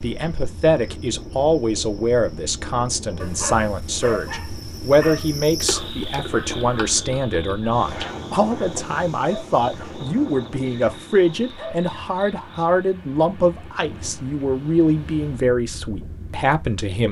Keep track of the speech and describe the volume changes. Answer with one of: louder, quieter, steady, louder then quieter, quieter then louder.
steady.